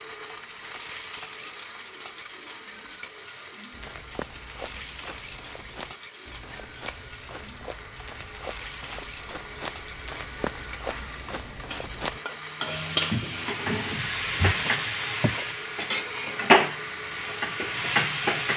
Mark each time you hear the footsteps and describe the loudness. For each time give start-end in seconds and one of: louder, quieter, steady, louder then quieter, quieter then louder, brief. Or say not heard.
3.7-15.4 louder.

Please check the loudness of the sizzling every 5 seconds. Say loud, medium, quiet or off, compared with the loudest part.
quiet, quiet, medium, loud.